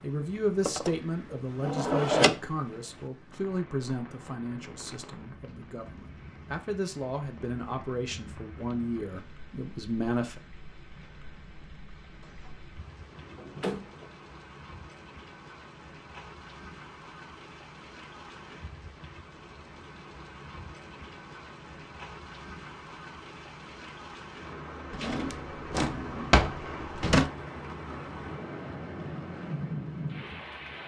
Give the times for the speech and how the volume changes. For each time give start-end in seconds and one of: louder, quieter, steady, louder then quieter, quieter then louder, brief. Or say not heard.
0.0-10.4 quieter then louder.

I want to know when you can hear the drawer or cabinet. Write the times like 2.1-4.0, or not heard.
0.7-2.4, 12.2-14.2, 24.9-27.3.